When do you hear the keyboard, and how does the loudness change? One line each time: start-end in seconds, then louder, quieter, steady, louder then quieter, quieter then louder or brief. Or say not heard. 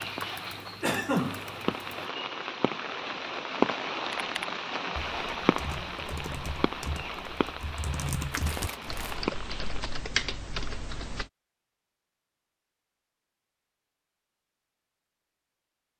0.0-2.0 brief
4.1-11.3 louder.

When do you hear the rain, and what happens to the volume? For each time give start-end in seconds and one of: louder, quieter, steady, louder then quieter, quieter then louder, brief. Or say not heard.
0.0-9.8 louder then quieter.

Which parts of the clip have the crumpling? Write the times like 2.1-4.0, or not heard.
8.3-9.2.